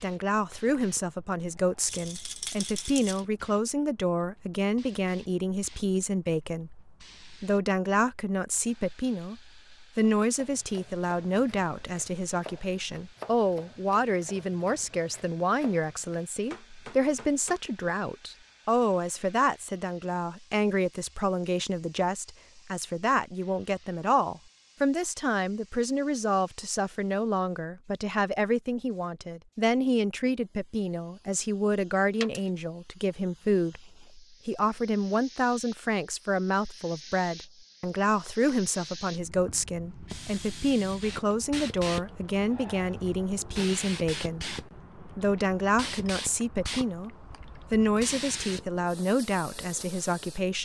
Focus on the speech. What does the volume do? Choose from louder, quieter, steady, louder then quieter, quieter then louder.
steady.